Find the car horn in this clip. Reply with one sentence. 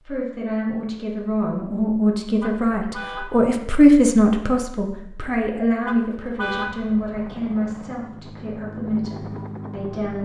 You can hear the car horn from 2.4 to 3.4 s and from 5.8 to 6.8 s.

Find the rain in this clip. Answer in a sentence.
You can't hear the rain here.